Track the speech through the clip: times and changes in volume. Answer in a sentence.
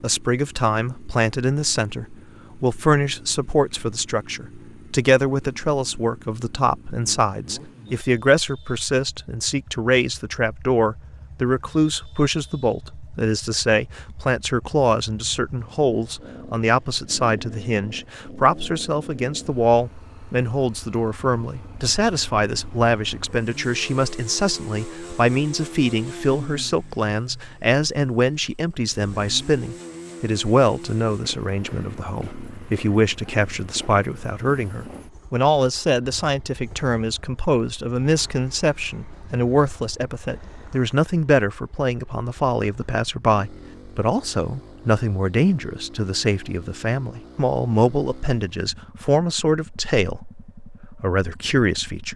You can hear the speech from 0.0 to 52.1 s, at a steady volume.